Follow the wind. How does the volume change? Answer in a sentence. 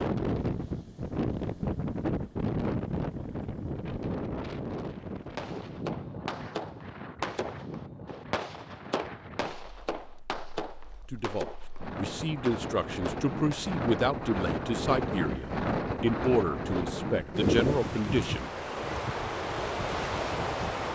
The loudness of the wind goes down, then up.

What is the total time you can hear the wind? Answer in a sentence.
The wind can be heard for 21 seconds in total.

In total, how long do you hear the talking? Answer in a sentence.
You can hear the talking for 8 seconds altogether.